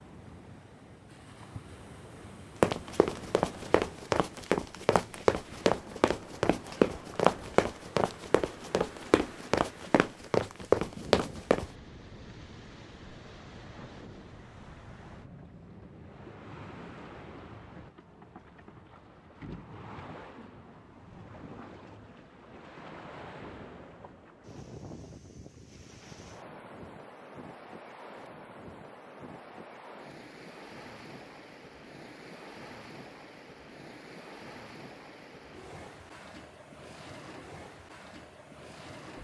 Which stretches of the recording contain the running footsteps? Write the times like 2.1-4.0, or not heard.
2.6-11.7.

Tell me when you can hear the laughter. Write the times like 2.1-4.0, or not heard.
not heard.